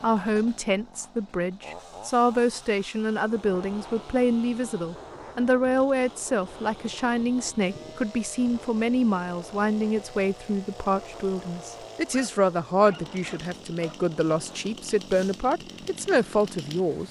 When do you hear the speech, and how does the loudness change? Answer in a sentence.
You can hear the speech from 0.0 to 17.0 s, at a steady volume.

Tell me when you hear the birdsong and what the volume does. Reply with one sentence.
You can't hear the birdsong here.